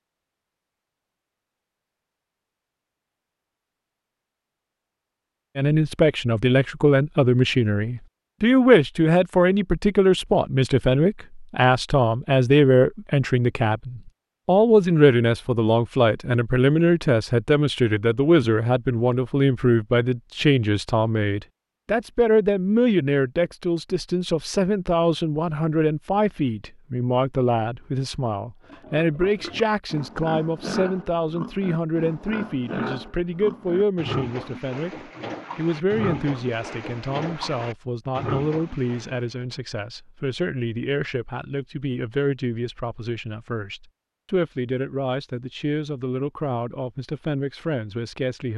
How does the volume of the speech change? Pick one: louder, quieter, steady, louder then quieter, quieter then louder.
quieter.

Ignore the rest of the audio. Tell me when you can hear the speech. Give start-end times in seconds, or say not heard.
5.5-48.5.